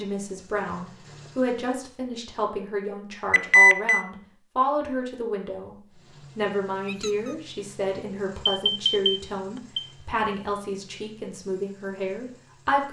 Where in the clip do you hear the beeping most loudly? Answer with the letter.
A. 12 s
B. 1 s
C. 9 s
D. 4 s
D.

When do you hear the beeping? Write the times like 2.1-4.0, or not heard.
3.3-4.0, 8.4-9.8.